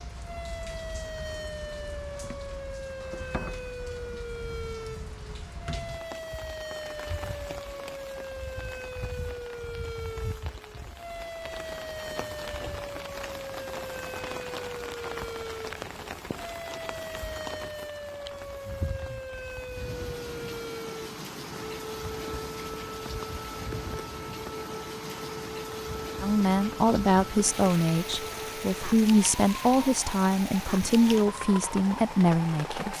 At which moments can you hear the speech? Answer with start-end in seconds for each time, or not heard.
26.2-32.9.